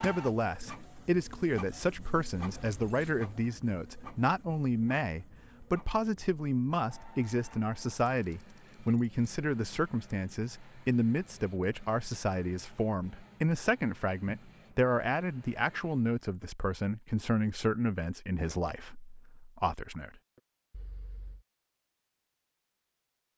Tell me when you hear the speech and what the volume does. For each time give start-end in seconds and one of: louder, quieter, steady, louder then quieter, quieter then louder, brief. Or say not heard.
0.0-20.1 steady.